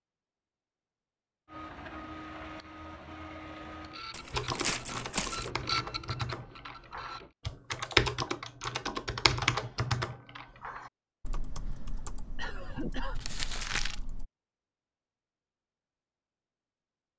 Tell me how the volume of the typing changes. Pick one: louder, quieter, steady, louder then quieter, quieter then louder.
louder then quieter.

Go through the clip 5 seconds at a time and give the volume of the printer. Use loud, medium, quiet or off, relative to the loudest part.
medium, loud, off, off.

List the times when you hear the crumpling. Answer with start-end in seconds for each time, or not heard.
4.1-5.5, 13.2-14.0.